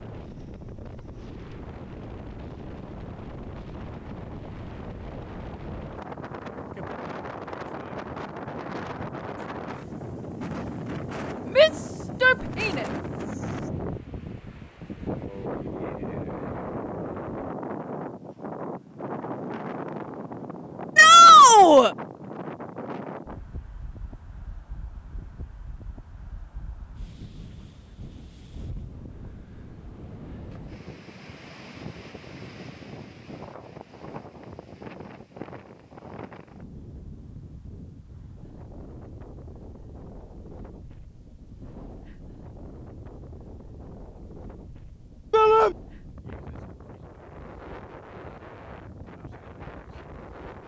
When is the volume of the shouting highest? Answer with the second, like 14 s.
21 s.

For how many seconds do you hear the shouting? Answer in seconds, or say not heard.
3 s.